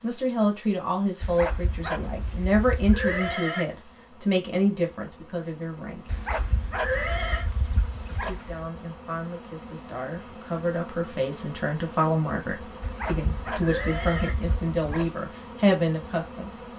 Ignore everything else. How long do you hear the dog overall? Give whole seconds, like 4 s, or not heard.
7 s.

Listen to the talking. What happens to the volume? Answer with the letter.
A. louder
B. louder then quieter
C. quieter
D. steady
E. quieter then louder
E.